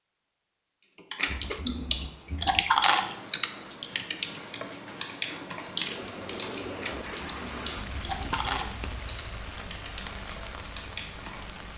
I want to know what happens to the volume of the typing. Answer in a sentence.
The volume of the typing goes down.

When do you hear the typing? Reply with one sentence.
The typing can be heard from 0.9 to 11.4 s.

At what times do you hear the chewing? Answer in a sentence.
The chewing can be heard from 1.1 to 3.1 s and from 6.8 to 8.8 s.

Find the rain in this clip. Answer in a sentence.
You can hear the rain from 2.7 to 11.7 s.